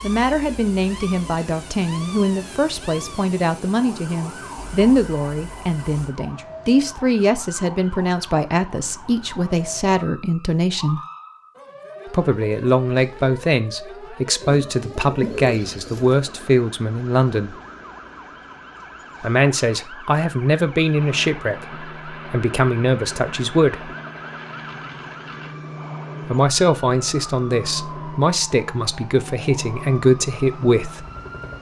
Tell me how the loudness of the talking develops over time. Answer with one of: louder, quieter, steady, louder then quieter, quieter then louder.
steady.